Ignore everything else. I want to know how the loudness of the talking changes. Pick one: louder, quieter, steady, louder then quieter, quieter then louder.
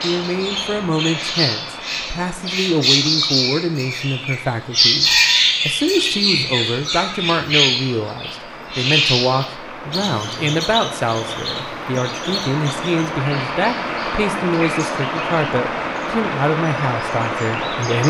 steady.